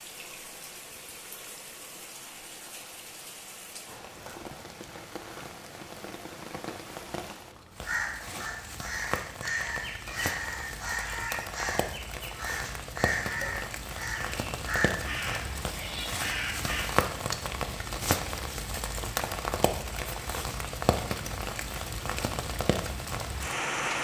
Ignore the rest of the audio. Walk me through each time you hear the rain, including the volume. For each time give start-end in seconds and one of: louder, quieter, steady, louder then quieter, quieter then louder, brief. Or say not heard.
0.0-23.9 louder.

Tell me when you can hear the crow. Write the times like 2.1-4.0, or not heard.
7.8-16.9.